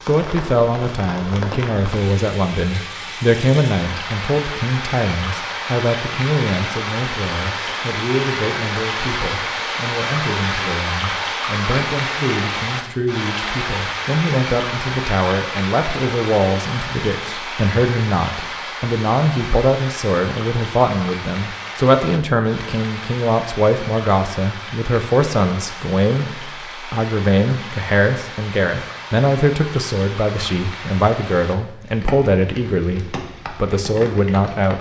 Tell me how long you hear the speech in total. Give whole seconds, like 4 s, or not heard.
35 s.